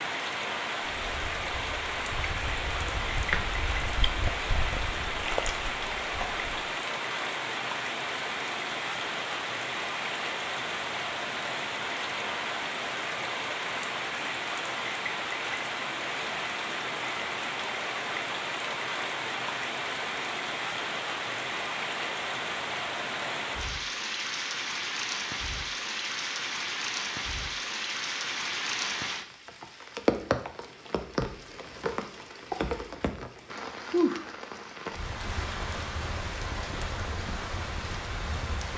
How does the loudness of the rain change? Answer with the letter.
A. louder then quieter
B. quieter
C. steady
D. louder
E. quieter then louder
C.